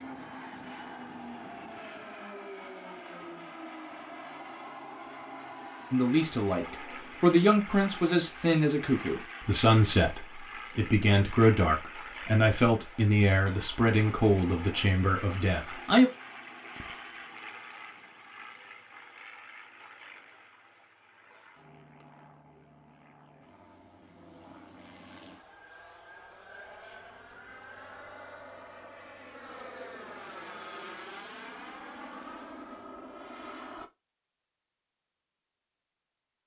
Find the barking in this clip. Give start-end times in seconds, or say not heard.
not heard.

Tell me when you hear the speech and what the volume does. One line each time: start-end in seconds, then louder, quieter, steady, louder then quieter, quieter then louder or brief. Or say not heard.
5.9-16.1 steady.